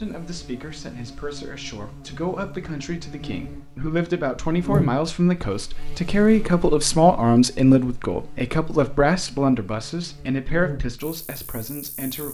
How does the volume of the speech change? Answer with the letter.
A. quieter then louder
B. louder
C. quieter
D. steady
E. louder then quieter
E.